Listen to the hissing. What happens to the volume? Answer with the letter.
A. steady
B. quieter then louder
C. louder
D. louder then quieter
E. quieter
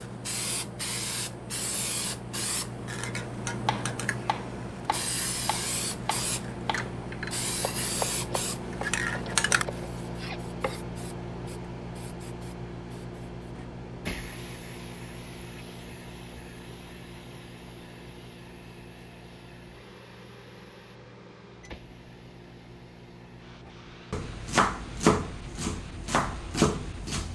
E.